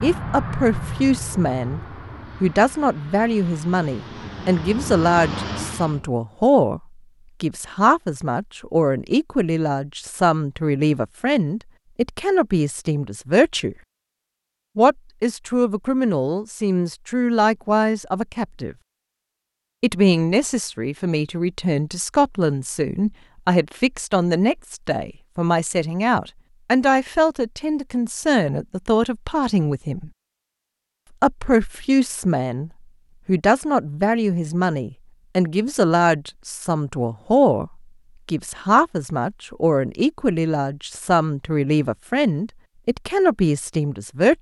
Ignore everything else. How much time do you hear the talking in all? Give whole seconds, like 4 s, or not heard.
40 s.